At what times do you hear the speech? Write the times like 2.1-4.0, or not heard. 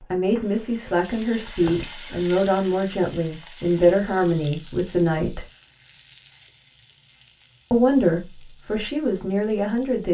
0.1-5.5, 7.7-10.0.